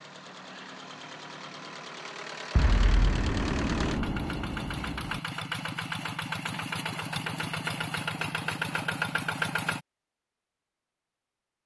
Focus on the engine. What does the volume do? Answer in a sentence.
The loudness of the engine goes up.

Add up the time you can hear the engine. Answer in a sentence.
The engine can be heard for 10 seconds in total.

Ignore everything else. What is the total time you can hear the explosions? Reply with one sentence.
You can hear the explosions for 3 seconds altogether.